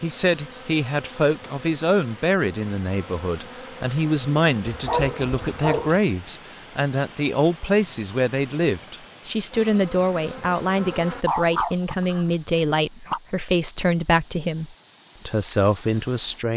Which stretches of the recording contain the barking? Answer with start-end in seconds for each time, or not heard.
4.7-6.0, 11.2-13.2.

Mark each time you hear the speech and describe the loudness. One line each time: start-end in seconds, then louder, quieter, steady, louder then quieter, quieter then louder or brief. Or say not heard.
0.0-16.5 steady.